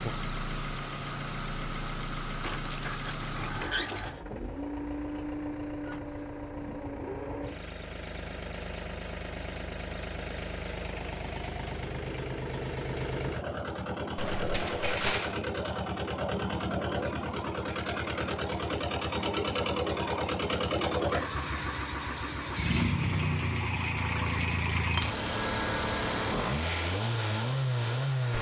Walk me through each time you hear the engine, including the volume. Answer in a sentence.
The engine can be heard from 0.0 to 28.3 s, getting louder.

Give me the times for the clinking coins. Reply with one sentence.
You can hear the clinking coins from 2.4 to 4.2 s, from 14.2 to 15.3 s and from 24.9 to 25.3 s.